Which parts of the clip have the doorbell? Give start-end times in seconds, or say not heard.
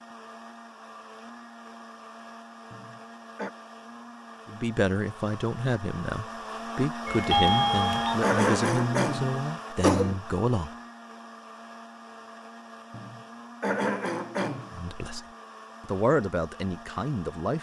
7.0-8.2.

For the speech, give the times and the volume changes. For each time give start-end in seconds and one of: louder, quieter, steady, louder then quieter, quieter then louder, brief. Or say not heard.
4.5-10.7 steady
14.7-17.5 brief.